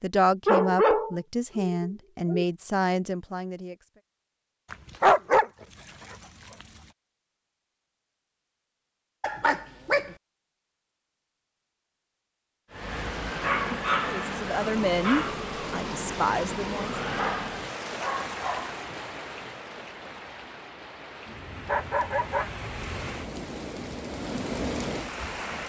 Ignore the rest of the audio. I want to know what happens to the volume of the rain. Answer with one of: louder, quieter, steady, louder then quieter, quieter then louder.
quieter then louder.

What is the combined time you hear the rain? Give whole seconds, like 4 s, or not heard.
13 s.